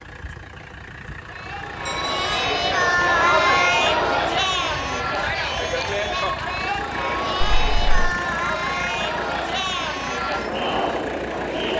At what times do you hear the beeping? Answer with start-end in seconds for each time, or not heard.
1.9-2.5, 7.4-8.2.